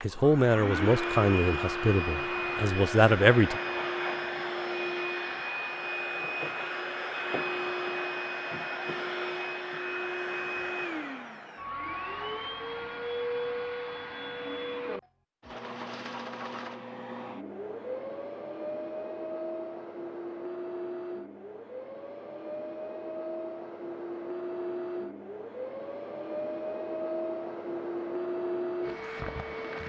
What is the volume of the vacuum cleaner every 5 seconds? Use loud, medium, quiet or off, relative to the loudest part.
loud, loud, loud, medium, medium, loud.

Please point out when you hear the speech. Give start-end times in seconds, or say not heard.
0.0-3.6.